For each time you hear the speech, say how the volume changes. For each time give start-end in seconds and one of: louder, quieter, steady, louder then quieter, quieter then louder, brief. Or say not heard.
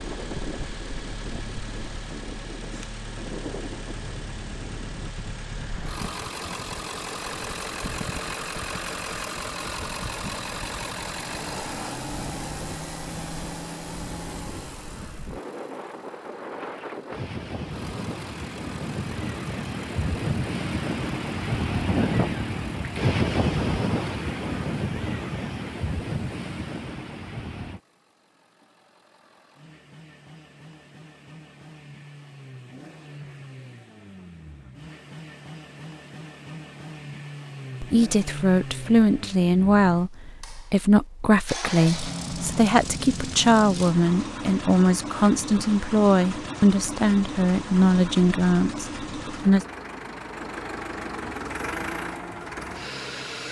37.8-49.6 steady.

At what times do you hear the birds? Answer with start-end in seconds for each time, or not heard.
not heard.